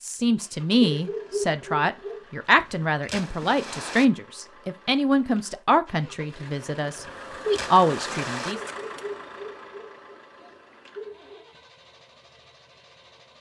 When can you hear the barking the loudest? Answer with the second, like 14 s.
1 s.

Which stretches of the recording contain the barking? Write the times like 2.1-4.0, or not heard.
0.8-2.2, 8.5-11.4.